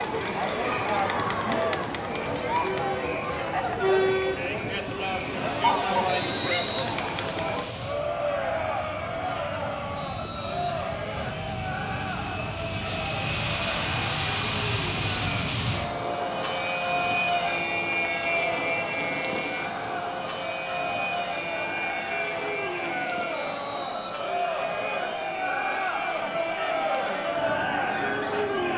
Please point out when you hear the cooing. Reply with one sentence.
You can't hear the cooing here.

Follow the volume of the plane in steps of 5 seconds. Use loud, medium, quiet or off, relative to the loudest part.
quiet, medium, loud, loud, medium, medium.